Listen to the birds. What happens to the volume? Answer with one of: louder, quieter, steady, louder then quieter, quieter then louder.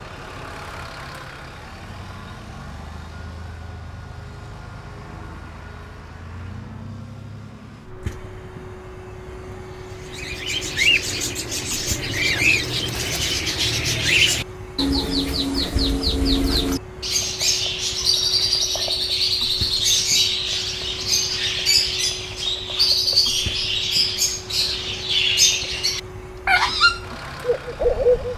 steady.